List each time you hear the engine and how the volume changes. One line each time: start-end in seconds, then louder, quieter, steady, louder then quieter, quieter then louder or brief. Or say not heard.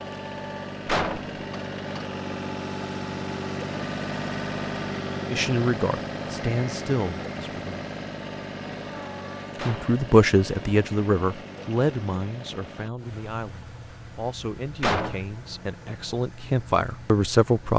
0.0-17.7 quieter.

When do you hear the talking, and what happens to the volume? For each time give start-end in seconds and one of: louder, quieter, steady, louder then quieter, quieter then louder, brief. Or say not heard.
5.3-7.8 brief
9.7-17.7 quieter then louder.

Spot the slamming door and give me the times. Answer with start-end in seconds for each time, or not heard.
0.8-1.3, 9.6-10.0, 14.8-15.3.